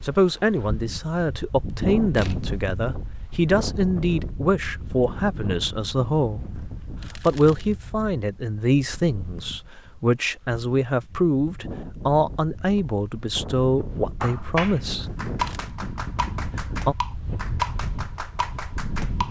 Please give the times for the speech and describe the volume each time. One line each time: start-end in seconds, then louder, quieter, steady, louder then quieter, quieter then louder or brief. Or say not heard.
0.0-15.1 steady.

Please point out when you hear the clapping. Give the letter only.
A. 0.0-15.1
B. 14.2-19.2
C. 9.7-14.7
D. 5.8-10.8
B.